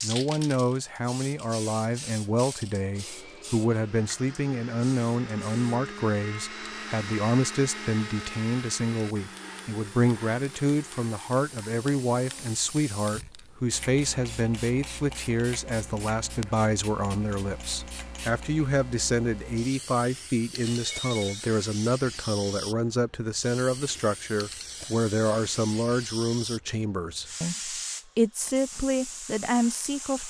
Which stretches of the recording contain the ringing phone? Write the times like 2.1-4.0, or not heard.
20.6-21.4.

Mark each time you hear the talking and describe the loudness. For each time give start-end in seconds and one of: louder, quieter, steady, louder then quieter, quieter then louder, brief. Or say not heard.
0.0-30.2 steady.